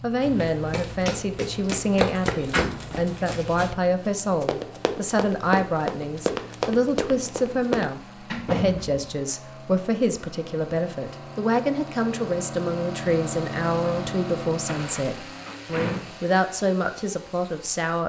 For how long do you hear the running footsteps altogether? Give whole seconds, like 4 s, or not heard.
8 s.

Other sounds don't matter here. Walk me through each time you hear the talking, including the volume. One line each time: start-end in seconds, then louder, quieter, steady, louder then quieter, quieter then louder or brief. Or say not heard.
0.0-18.0 steady.